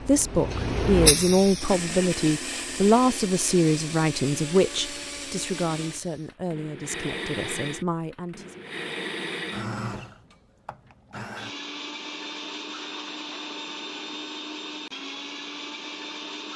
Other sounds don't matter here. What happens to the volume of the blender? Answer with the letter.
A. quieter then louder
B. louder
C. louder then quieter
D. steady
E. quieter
D.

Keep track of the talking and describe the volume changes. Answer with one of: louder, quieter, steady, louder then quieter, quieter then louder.
quieter.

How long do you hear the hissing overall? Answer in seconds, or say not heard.
6 s.